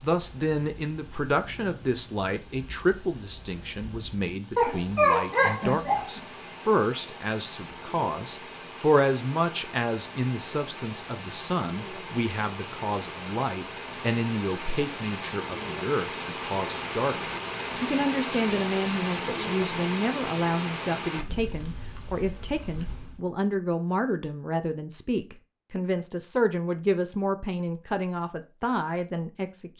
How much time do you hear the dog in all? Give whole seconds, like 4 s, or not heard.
2 s.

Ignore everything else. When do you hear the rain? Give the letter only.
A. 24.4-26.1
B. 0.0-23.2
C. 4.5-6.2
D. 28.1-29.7
B.